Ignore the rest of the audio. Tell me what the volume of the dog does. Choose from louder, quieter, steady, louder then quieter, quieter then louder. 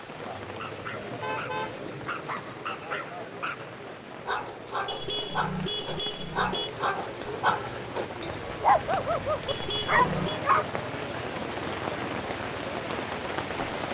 louder.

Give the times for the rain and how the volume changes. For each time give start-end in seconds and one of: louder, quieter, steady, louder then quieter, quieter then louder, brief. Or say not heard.
0.0-13.8 louder.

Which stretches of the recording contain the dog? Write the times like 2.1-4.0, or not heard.
0.5-10.7.